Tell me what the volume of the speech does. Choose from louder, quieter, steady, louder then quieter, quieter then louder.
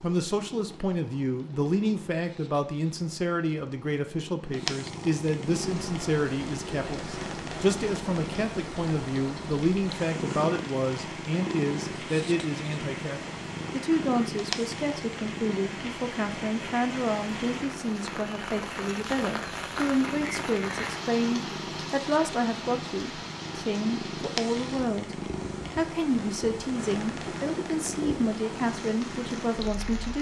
steady.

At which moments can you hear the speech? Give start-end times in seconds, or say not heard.
0.0-30.1.